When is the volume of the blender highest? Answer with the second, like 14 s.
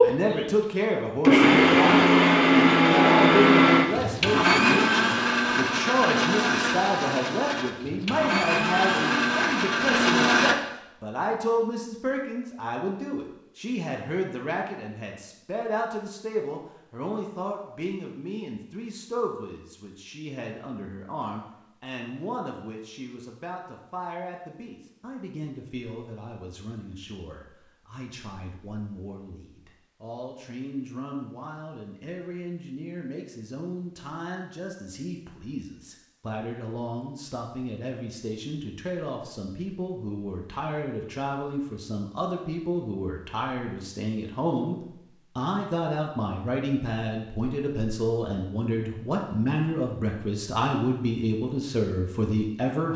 2 s.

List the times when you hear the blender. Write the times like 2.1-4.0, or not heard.
0.0-10.6.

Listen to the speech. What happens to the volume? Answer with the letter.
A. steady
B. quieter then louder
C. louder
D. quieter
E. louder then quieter
B.